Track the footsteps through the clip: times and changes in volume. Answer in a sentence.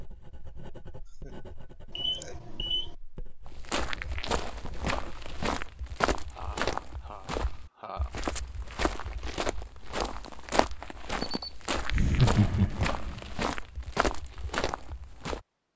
You can hear the footsteps from 3.5 to 15.4 s, at a steady volume.